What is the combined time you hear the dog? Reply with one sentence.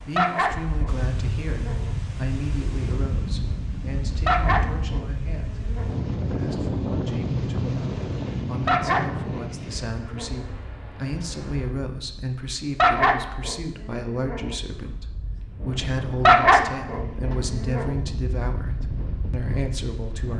The dog can be heard for 9 seconds in total.